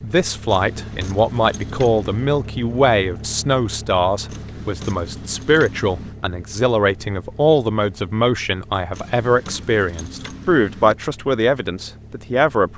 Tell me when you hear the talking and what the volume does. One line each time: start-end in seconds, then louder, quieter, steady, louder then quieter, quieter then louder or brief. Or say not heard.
0.0-12.7 steady.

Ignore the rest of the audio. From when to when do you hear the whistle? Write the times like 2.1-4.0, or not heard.
not heard.